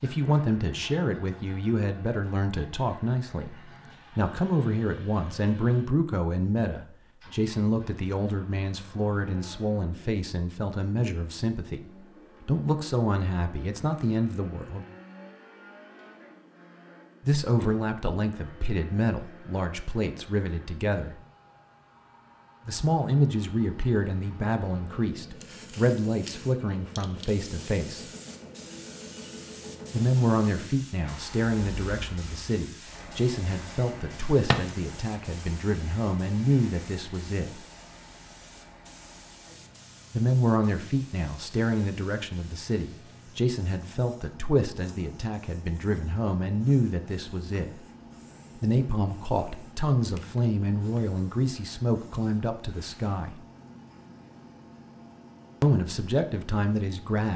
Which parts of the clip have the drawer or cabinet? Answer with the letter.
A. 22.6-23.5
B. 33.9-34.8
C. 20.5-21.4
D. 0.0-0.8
B.